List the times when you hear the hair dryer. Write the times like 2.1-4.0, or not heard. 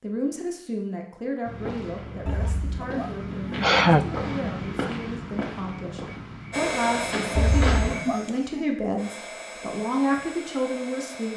6.5-11.3.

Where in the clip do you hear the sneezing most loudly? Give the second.
4 s.